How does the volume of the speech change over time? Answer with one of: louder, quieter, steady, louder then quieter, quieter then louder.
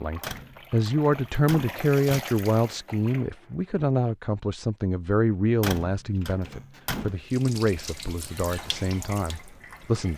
quieter.